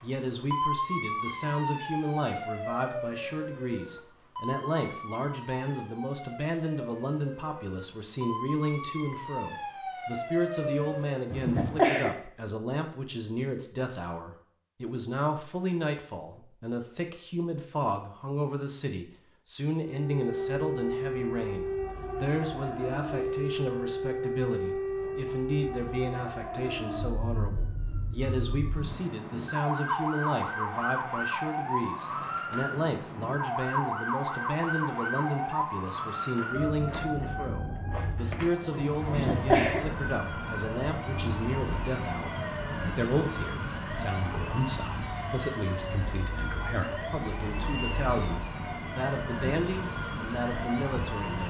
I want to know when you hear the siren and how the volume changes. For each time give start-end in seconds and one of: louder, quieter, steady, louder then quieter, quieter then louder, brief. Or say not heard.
0.0-11.3 quieter then louder
19.8-51.4 steady.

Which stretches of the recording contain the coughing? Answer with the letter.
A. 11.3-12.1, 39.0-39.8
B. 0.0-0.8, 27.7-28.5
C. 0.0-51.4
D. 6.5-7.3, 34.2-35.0
A.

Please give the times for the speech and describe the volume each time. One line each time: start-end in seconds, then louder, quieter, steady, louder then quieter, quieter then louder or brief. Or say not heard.
0.0-51.4 steady.